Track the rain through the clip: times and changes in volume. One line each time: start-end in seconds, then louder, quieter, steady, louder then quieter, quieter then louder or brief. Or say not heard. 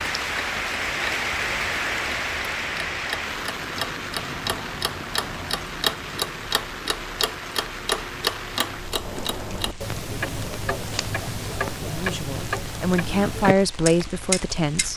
0.0-14.9 quieter.